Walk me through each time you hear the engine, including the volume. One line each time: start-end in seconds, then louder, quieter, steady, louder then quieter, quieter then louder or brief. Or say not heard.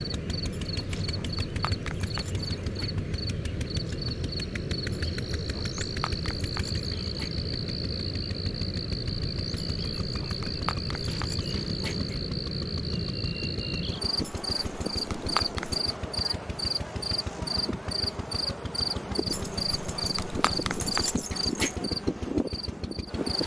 0.0-23.4 steady.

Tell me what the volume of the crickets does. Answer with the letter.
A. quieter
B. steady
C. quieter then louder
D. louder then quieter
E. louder
B.